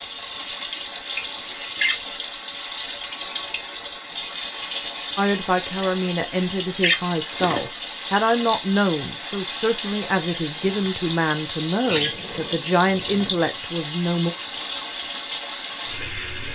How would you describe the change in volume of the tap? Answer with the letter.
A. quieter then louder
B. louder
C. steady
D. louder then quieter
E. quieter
C.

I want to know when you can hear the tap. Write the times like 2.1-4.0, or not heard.
0.0-16.5.